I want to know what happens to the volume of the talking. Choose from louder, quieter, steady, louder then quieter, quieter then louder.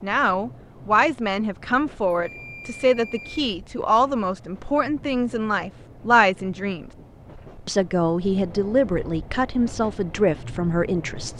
steady.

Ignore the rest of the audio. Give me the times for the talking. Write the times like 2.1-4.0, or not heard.
0.0-6.8, 7.7-11.3.